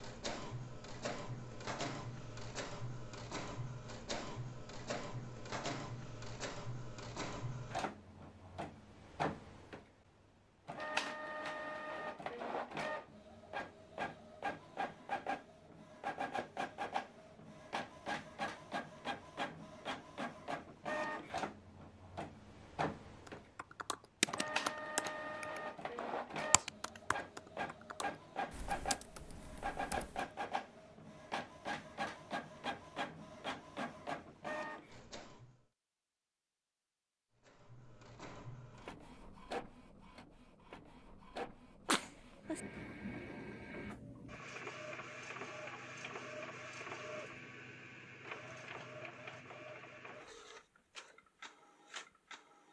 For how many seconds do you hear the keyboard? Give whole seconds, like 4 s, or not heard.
7 s.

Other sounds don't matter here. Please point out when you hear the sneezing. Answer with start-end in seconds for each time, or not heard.
41.9-42.6.